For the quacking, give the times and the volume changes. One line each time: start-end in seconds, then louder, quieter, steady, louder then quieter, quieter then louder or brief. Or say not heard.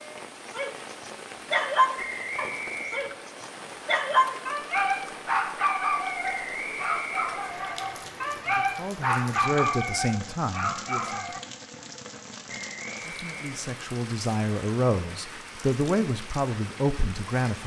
not heard.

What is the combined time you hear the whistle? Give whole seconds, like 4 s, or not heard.
4 s.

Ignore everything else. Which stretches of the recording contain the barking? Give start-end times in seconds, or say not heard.
0.5-11.4.